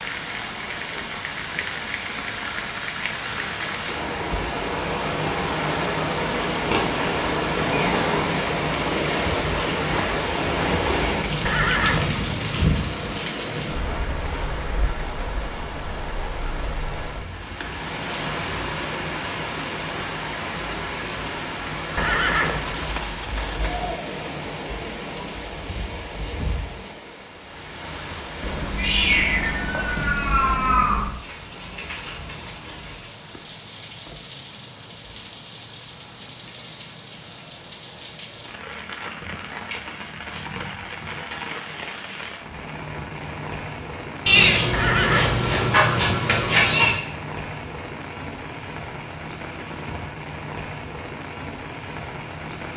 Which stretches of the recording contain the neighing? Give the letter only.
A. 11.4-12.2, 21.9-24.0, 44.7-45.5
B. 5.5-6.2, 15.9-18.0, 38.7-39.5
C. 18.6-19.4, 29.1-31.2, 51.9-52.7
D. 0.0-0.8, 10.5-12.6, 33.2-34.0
A.